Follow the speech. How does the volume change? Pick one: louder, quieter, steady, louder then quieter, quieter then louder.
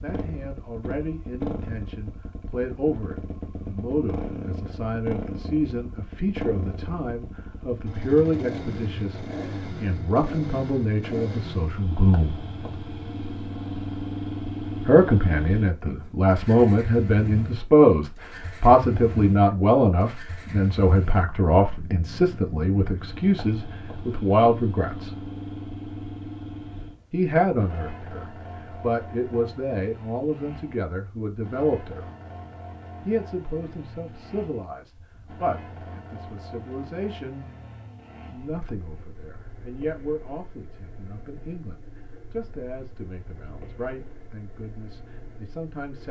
louder then quieter.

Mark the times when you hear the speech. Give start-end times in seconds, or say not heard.
0.0-12.4, 14.8-25.1, 27.1-32.0, 33.0-37.5, 38.2-46.0.